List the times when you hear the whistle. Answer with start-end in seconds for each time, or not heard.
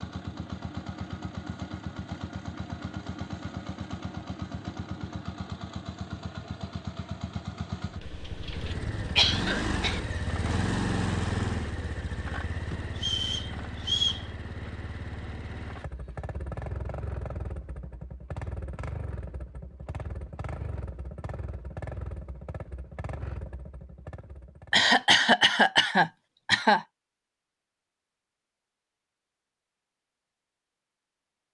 12.9-14.2.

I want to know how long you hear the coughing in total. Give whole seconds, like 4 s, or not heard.
4 s.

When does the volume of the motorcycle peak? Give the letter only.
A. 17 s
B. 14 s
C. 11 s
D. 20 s
C.